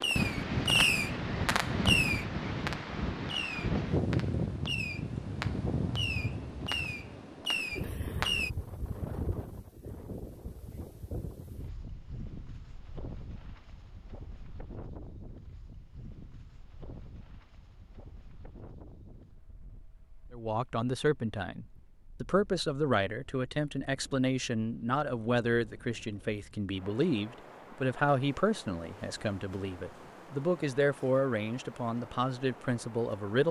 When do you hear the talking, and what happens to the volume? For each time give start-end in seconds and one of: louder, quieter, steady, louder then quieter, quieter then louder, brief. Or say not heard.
20.3-33.4 steady.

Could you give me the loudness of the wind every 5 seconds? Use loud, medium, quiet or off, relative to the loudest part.
loud, medium, quiet, quiet, quiet, quiet, quiet.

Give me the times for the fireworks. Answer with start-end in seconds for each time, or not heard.
0.0-8.5.